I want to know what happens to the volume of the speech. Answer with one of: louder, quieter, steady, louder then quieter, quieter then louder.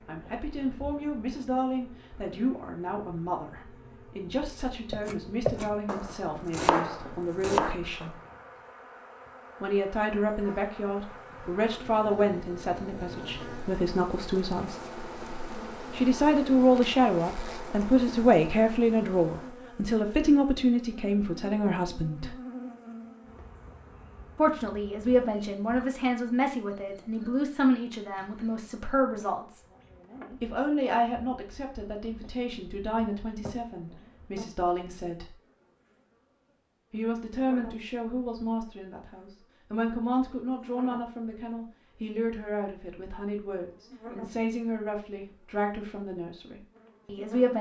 louder then quieter.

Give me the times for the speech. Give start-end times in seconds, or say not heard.
0.1-8.2, 9.6-14.8, 15.9-22.4, 24.4-29.6, 30.4-35.4, 36.9-47.5.